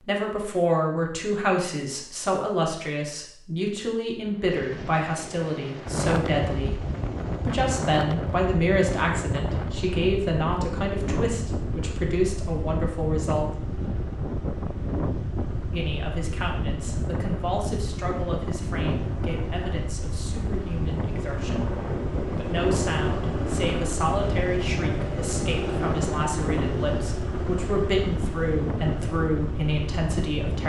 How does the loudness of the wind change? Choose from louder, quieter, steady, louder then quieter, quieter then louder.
steady.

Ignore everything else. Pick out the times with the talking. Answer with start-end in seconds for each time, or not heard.
0.0-6.8, 7.4-13.6, 15.7-30.6.